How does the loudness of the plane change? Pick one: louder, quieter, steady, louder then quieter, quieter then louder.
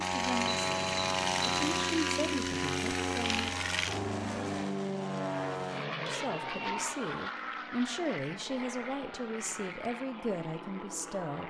quieter.